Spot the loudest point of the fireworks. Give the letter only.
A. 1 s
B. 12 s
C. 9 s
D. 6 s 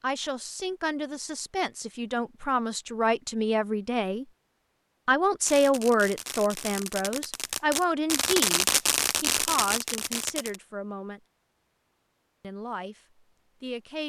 C.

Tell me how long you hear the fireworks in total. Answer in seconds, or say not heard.
5 s.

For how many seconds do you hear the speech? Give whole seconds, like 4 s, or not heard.
12 s.